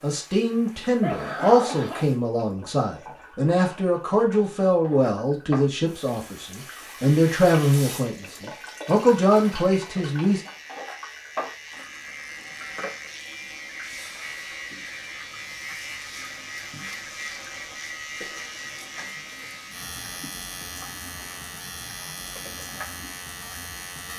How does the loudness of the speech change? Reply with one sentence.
The loudness of the speech stays about the same.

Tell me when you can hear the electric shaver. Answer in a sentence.
The electric shaver can be heard from 6.8 to 24.1 s.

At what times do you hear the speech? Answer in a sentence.
The speech can be heard from 0.0 to 10.4 s.